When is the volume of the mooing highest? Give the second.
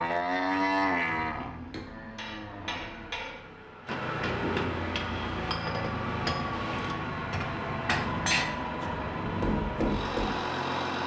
1 s.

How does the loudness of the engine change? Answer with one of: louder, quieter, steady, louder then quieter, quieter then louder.
louder.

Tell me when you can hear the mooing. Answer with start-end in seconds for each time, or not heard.
0.0-3.5.